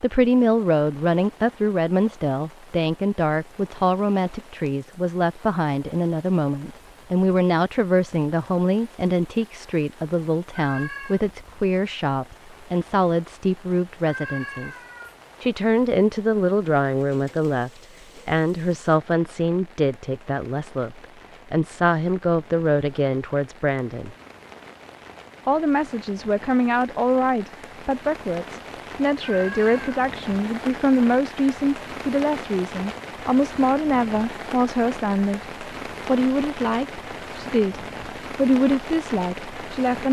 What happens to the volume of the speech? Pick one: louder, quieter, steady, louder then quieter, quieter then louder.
steady.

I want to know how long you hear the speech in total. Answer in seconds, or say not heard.
38 s.